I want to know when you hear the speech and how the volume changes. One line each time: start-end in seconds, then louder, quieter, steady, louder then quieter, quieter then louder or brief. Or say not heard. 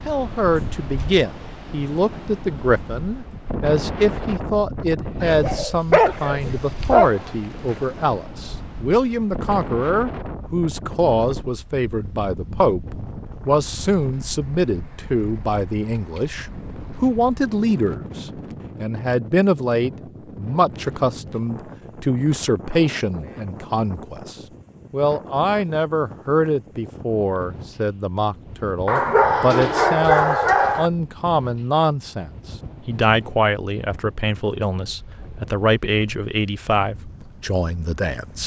0.1-38.4 steady.